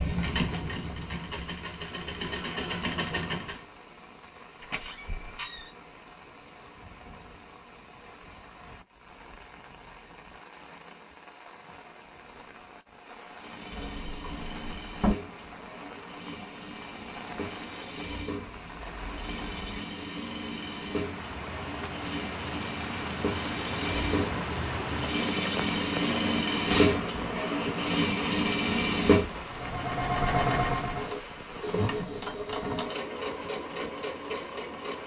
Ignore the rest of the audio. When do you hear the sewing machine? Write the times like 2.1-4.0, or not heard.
0.0-3.6, 13.2-35.0.